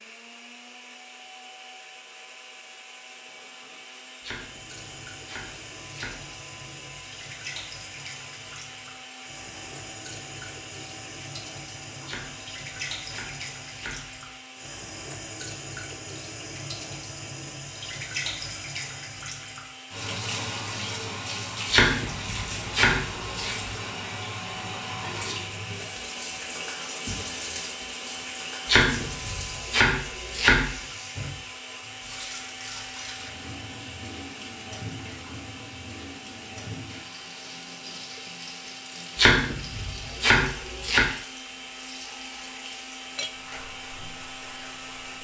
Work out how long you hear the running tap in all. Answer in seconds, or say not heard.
41 s.